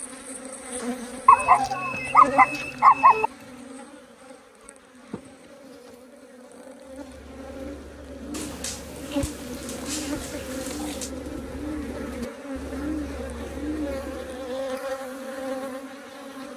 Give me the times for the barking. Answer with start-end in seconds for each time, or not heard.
1.2-3.3, 8.3-11.1.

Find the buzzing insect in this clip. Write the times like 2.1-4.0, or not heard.
0.0-16.5.